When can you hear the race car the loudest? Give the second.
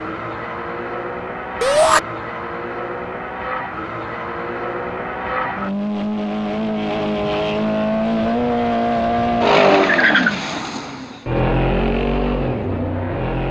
10 s.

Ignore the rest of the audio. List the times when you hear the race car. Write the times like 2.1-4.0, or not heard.
0.0-13.4.